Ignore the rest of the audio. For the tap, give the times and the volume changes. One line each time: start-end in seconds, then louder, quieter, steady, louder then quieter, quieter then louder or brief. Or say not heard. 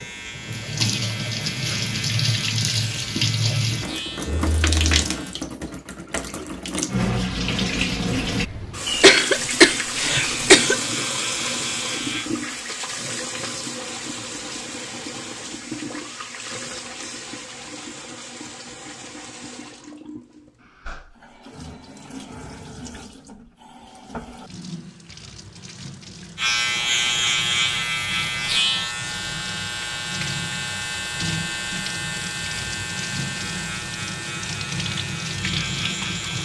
0.0-36.3 quieter then louder.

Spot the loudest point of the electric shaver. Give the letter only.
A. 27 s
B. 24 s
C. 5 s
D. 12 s
A.